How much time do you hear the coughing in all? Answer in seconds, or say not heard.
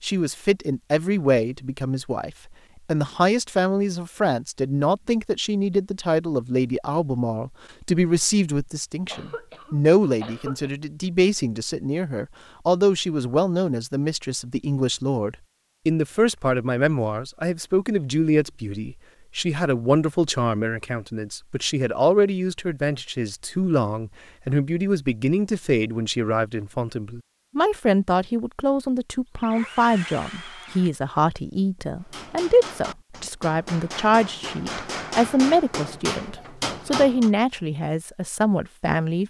2 s.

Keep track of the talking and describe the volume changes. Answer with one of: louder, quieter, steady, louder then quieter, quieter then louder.
steady.